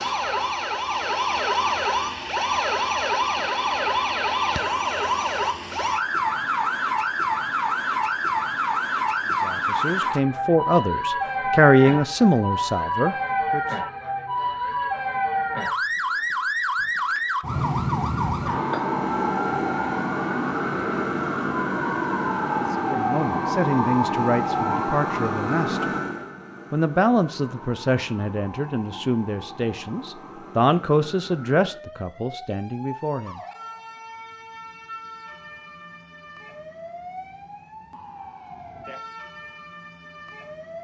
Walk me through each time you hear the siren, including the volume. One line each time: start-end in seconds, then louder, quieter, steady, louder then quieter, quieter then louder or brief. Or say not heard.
0.0-40.7 quieter.